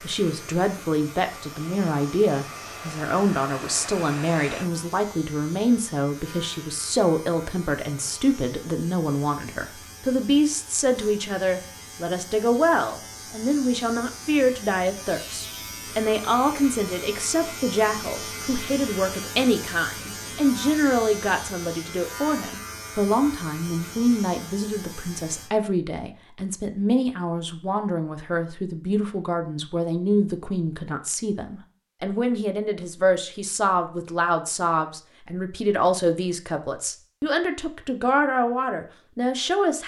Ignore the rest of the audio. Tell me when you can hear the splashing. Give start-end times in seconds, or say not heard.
not heard.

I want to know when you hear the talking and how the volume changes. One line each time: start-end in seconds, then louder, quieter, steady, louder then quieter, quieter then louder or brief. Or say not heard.
0.0-39.8 steady.